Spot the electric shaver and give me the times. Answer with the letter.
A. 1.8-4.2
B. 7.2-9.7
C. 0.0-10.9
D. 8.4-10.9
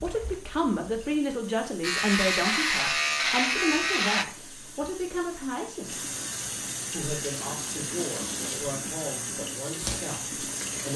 A.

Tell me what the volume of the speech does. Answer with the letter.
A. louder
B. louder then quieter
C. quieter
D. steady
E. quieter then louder
C.